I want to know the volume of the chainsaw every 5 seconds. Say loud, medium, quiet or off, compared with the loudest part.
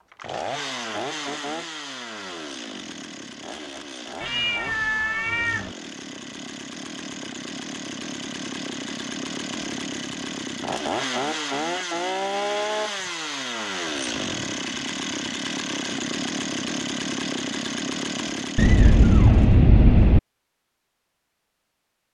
medium, medium, loud, loud, off.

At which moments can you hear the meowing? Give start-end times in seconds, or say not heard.
4.2-5.8, 18.6-20.2.